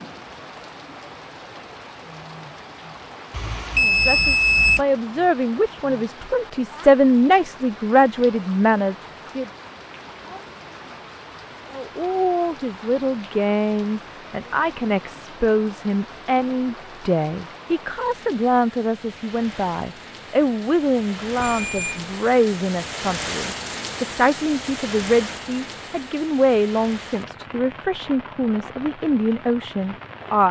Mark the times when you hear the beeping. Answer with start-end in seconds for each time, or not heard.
3.3-4.8, 21.4-22.1.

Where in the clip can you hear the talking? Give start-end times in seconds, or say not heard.
3.8-9.5, 11.7-30.4.